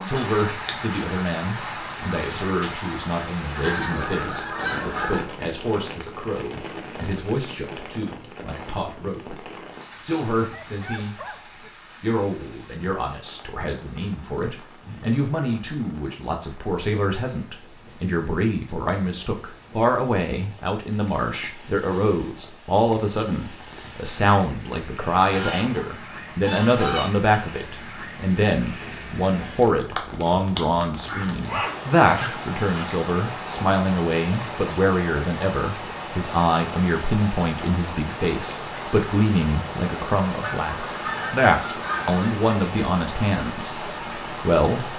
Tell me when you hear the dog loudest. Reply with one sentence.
The loudest moment of the dog is at 32 seconds.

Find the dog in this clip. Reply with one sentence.
The dog can be heard from 10.4 to 11.7 s and from 31.1 to 32.9 s.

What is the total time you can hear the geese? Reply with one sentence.
You can hear the geese for 6 seconds altogether.